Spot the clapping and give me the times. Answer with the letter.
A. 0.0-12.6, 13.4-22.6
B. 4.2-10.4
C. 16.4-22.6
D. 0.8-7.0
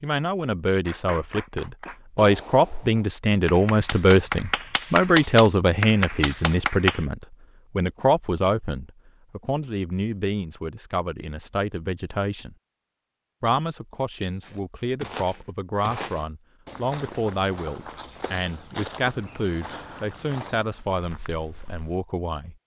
D.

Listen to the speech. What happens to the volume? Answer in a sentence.
The loudness of the speech goes down.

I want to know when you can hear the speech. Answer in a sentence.
The speech can be heard from 0.0 to 12.6 s and from 13.4 to 22.6 s.